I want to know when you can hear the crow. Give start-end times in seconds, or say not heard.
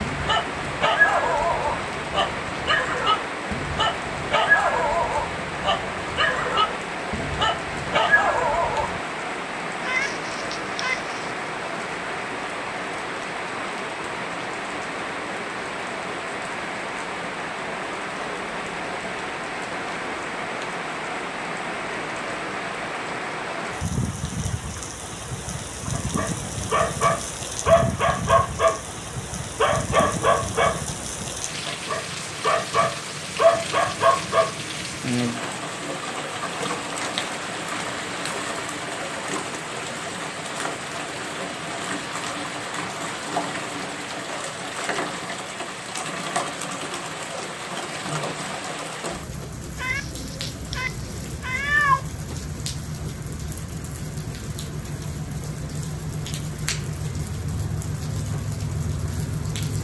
not heard.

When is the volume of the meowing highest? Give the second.
52 s.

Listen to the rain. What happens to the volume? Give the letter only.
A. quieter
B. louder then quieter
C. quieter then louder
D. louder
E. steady
E.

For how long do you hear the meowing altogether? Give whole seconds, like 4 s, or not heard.
4 s.